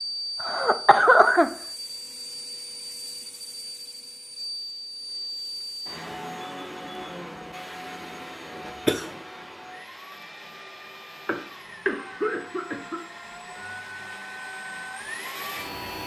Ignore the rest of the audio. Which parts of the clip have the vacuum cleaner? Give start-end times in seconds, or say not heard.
0.0-16.0.